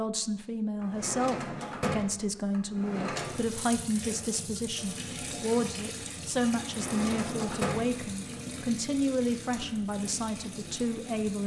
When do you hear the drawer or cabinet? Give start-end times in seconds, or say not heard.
0.8-3.5, 6.6-8.3.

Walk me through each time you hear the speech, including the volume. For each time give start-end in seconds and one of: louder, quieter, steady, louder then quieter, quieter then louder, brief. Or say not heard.
0.0-11.4 steady.